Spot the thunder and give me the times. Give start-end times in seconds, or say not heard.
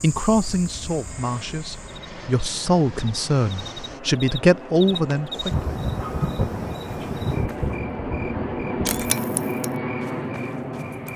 5.2-9.1.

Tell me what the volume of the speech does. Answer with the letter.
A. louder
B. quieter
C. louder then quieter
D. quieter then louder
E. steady
A.